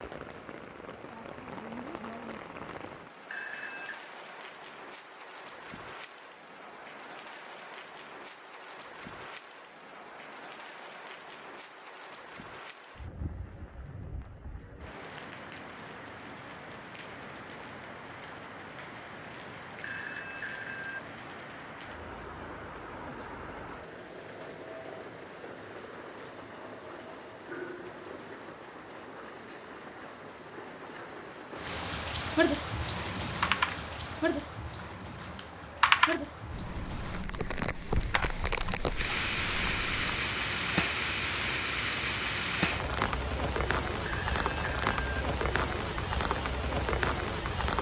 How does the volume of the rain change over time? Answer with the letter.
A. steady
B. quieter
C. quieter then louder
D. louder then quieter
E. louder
E.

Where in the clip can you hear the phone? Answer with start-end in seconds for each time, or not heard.
3.3-4.0, 19.8-21.0, 44.0-45.2.